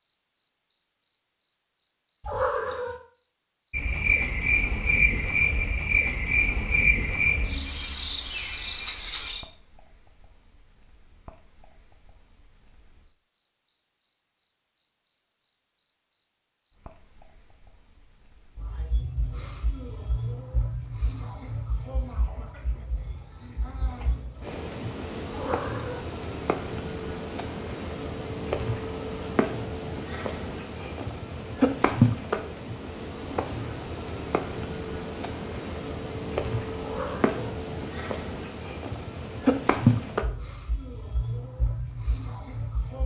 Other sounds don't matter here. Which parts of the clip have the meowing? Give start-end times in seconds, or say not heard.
2.2-3.0, 25.3-26.1, 36.8-37.4.